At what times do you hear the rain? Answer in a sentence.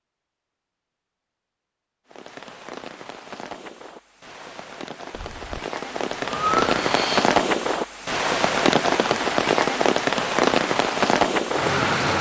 You can hear the rain from 2.0 to 12.1 s.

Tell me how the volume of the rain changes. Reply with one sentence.
The loudness of the rain goes up.